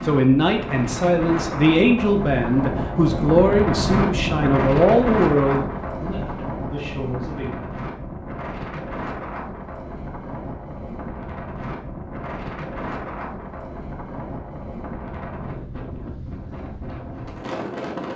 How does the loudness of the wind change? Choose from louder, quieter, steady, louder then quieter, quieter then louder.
quieter.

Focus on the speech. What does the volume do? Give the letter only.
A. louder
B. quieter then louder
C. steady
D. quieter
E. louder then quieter
D.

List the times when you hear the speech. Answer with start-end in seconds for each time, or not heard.
0.0-7.7.